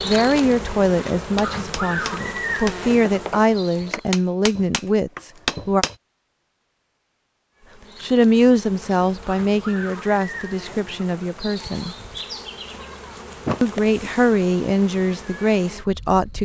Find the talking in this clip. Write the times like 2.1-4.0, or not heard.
0.0-5.8, 8.0-11.9, 13.6-16.4.